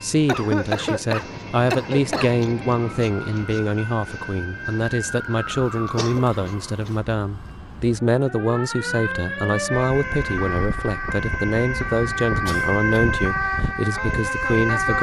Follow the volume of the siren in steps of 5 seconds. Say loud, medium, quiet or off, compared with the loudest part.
medium, medium, loud.